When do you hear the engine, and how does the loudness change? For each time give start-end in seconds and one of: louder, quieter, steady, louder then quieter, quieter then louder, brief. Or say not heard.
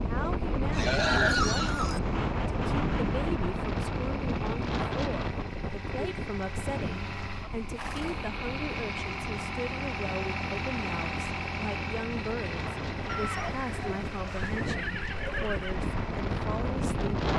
0.0-17.3 louder then quieter.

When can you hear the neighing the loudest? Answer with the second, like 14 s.
1 s.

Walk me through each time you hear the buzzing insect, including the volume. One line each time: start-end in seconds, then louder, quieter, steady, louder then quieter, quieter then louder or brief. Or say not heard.
not heard.